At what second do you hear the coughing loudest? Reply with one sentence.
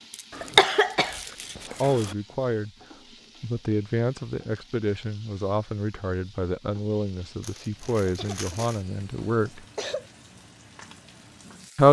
The loudest moment of the coughing is at 1 second.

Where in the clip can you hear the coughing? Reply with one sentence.
The coughing can be heard from 0.3 to 2.1 s and from 8.1 to 10.1 s.